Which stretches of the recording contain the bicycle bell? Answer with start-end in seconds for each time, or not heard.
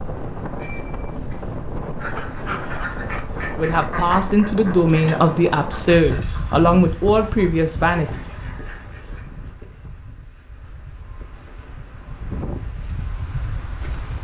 0.6-1.4.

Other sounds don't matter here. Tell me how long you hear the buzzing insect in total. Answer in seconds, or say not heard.
not heard.